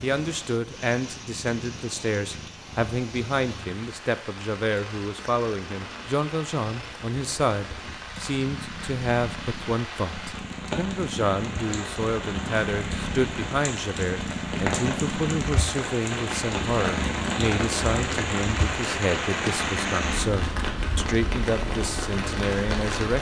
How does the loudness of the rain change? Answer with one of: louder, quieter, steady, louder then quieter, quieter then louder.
louder.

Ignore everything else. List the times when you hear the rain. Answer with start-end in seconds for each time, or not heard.
0.0-23.1.